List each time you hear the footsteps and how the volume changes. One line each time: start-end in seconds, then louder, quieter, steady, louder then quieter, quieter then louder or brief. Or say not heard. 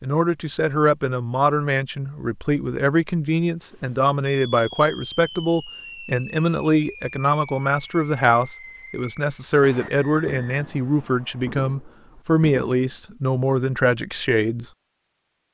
not heard.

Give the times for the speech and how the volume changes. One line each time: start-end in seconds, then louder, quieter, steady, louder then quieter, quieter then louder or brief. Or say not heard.
0.0-14.7 steady.